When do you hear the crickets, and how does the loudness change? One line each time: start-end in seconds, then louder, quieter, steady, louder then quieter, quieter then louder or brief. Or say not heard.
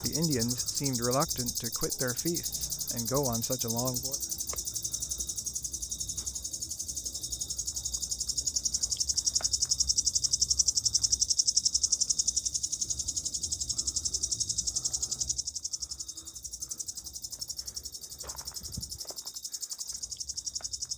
0.0-20.9 louder then quieter.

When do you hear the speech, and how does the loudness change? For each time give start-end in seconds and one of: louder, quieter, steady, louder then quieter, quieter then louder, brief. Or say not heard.
0.0-4.2 quieter then louder.